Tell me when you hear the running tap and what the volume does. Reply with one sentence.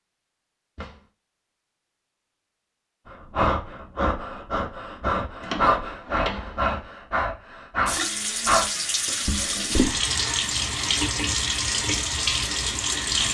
You can hear the running tap from 7.8 to 13.2 s, at a steady volume.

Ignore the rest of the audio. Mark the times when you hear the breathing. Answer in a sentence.
The breathing can be heard from 3.1 to 8.7 s.